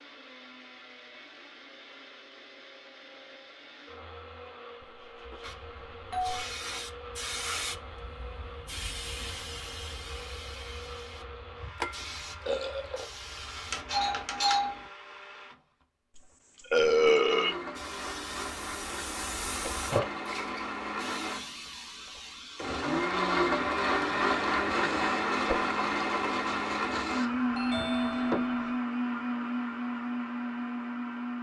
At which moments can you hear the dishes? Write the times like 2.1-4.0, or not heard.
not heard.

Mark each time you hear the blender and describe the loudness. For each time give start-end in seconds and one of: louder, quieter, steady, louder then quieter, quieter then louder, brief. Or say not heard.
0.0-31.3 louder.